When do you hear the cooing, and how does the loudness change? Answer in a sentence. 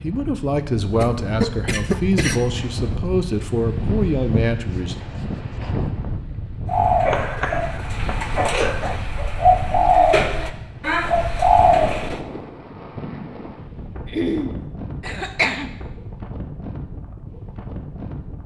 The cooing can be heard from 6.7 to 12.2 s, getting louder.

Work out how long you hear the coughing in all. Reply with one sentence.
You can hear the coughing for 6 seconds altogether.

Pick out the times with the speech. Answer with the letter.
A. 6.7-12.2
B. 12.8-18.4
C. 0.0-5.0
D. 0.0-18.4
C.